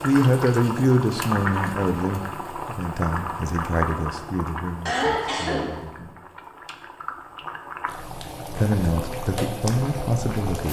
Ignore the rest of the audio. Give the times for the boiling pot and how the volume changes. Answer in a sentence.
The boiling pot can be heard from 0.0 to 10.6 s, getting quieter then louder.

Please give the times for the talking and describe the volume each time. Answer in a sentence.
You can hear the talking from 0.0 to 6.2 s, getting quieter; and briefly from 8.6 to 10.6 s.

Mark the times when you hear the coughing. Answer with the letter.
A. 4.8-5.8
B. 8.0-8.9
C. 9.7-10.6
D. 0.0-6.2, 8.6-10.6
A.